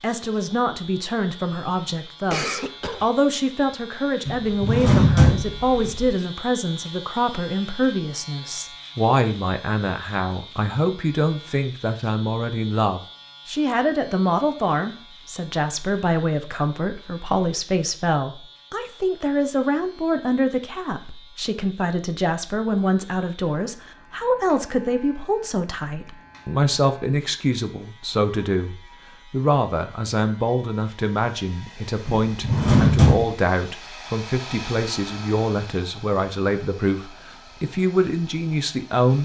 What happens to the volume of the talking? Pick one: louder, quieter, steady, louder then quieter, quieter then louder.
steady.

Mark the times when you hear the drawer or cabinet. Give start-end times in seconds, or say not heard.
4.2-6.2, 32.0-33.3.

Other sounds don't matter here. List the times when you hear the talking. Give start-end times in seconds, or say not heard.
0.0-39.2.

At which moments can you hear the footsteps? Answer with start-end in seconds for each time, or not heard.
not heard.